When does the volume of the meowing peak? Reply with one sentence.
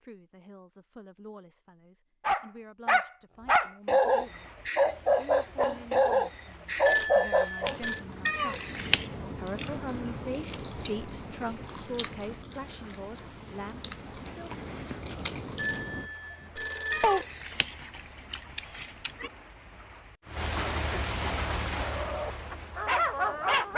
The volume of the meowing peaks at 9 seconds.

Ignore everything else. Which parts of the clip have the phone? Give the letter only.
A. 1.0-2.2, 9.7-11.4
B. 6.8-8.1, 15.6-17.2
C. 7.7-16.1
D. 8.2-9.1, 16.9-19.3
B.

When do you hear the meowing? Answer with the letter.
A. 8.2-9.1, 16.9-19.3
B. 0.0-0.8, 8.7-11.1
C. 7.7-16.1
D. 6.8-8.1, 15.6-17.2
A.